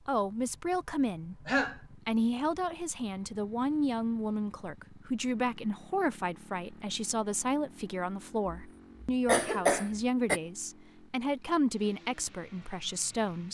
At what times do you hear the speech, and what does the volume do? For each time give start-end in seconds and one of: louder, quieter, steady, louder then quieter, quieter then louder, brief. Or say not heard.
0.1-13.4 steady.